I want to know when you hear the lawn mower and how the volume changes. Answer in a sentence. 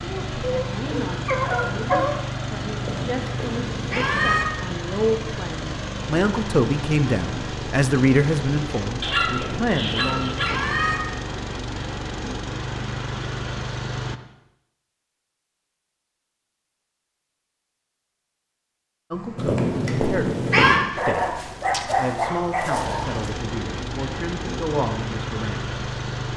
The lawn mower can be heard from 0.0 to 14.2 s, at a steady volume; and from 19.1 to 26.3 s, getting louder.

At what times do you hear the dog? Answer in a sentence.
You can hear the dog from 0.4 to 2.1 s, from 9.0 to 10.6 s and from 20.9 to 23.2 s.